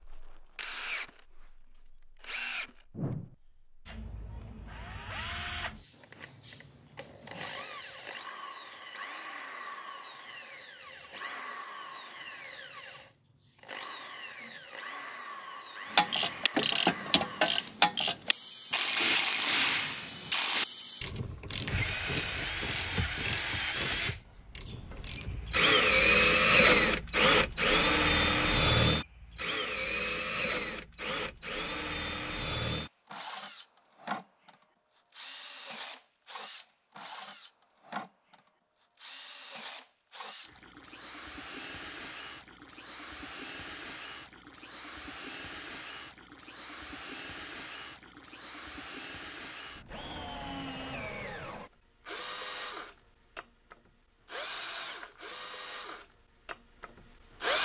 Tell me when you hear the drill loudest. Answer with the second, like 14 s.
26 s.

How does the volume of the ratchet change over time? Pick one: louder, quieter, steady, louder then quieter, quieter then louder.
quieter.